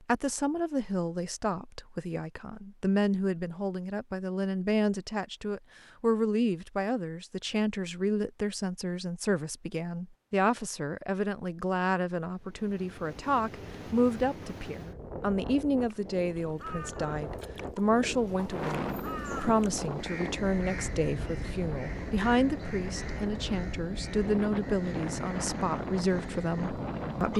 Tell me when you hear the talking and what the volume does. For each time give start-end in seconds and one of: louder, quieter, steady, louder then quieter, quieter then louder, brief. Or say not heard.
0.1-27.3 steady.